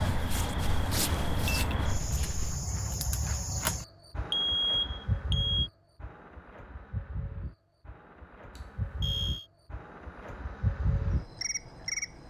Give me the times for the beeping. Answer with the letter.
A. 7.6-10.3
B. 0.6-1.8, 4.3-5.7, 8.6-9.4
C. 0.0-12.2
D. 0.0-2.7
B.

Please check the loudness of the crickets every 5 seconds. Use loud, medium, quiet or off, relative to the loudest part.
loud, medium, loud.